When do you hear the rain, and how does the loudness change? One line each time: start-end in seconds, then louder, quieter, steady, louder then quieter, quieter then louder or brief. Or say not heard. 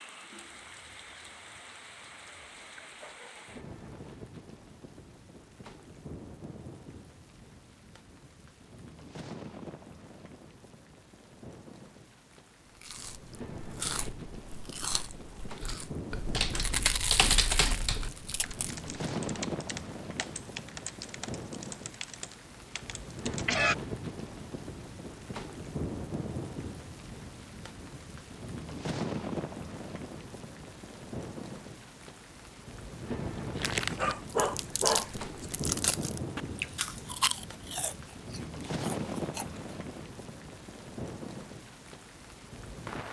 0.0-43.0 louder.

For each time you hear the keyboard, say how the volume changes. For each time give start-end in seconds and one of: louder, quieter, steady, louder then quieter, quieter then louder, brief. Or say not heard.
15.6-23.8 quieter.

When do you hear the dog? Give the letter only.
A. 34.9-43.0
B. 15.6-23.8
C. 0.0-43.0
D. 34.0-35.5
D.